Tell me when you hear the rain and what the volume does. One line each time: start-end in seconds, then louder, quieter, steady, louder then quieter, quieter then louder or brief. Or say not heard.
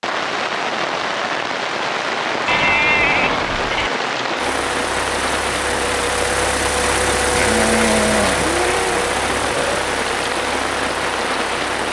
0.0-11.8 steady.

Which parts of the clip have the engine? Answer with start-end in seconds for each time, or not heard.
4.3-11.8.